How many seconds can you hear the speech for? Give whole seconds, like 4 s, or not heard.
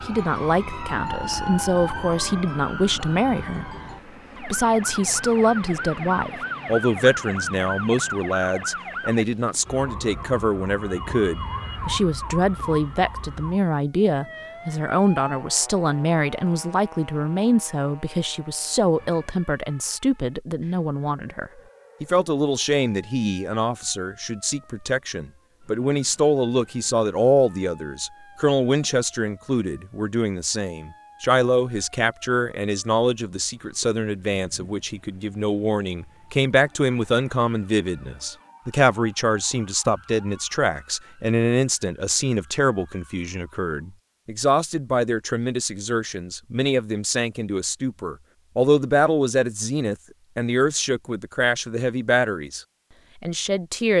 53 s.